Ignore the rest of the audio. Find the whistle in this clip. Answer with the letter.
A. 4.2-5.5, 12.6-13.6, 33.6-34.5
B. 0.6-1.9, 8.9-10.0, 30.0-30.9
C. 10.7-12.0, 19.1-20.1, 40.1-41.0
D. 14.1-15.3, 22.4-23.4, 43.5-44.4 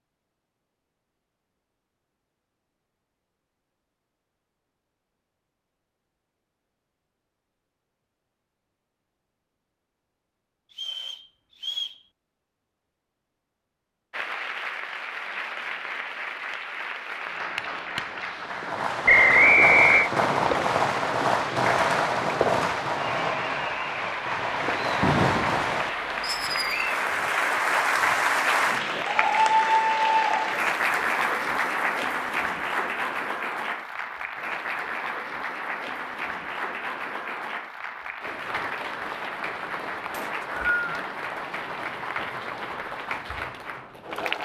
C.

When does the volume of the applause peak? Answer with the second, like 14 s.
30 s.